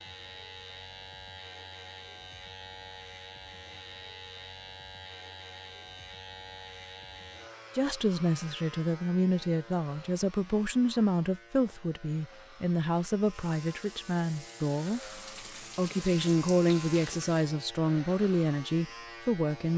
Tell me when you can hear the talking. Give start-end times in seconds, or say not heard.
7.8-15.0, 15.8-19.7.